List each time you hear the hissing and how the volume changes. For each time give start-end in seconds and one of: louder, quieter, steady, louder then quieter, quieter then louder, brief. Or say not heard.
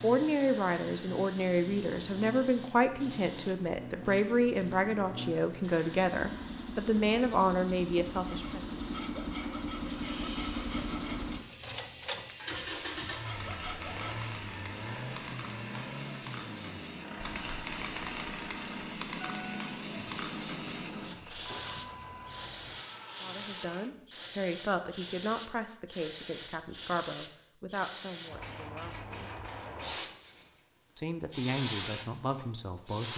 0.0-33.1 louder.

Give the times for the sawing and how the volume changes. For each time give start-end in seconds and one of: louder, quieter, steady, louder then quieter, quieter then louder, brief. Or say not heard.
8.2-14.2 quieter then louder.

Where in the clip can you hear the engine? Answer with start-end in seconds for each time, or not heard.
0.0-23.9.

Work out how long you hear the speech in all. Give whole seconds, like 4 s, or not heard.
17 s.